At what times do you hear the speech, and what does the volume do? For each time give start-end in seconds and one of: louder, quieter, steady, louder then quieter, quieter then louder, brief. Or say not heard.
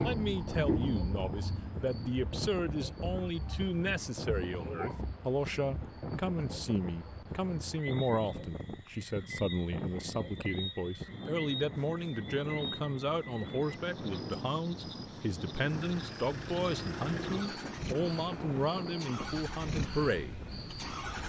0.0-20.4 steady.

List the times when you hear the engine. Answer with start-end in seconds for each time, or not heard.
15.6-21.2.